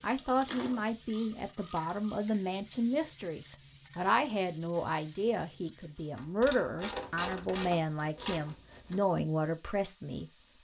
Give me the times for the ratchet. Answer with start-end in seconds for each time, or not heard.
0.1-2.1, 6.2-9.0.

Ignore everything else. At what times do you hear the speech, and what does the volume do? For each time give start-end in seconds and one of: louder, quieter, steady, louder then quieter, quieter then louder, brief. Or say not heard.
0.0-10.6 steady.